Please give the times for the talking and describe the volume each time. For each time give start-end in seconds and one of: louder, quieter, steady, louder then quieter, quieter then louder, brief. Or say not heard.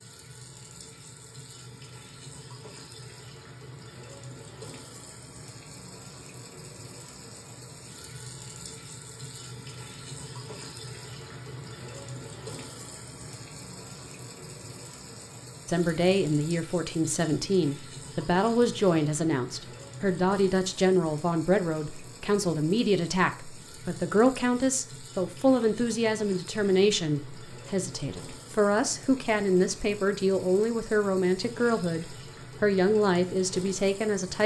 15.7-34.4 steady.